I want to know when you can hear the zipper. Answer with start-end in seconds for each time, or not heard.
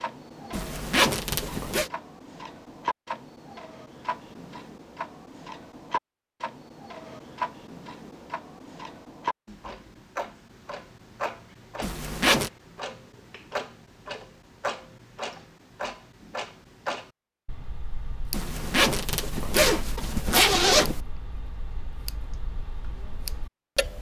0.5-1.9, 11.8-12.5, 18.3-21.0.